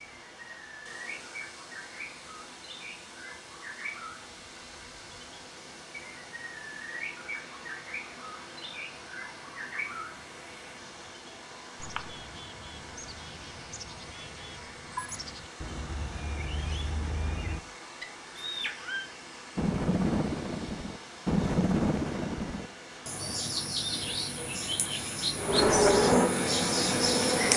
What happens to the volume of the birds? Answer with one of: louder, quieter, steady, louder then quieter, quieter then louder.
louder.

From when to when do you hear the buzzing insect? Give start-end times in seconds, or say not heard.
25.4-27.5.